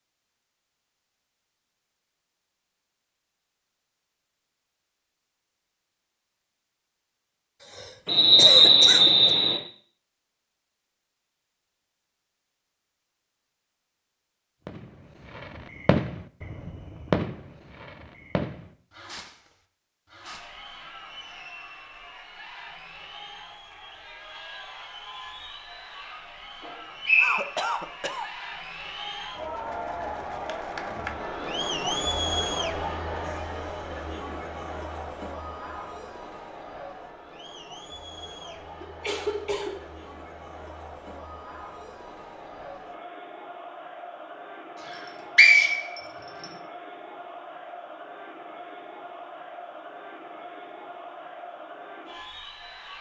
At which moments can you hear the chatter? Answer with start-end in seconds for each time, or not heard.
20.2-52.9.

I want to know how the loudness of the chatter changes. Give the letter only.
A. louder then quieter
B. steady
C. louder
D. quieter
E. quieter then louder
A.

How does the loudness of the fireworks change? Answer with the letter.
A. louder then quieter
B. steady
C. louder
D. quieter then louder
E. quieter
E.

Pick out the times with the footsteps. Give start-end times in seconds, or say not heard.
not heard.